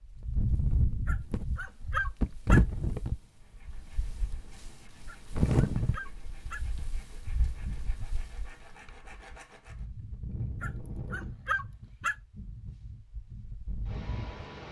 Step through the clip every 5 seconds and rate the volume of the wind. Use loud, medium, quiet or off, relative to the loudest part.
loud, loud, medium.